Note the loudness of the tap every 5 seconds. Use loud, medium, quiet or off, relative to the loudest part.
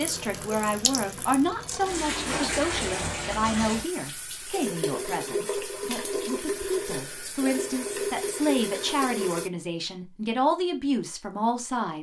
loud, loud, off.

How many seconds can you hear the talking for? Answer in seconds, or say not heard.
12 s.